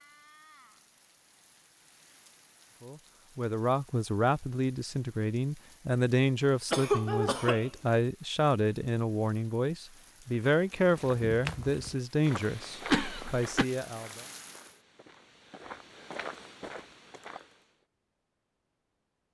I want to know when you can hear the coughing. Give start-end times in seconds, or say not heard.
6.7-7.7, 12.8-13.7.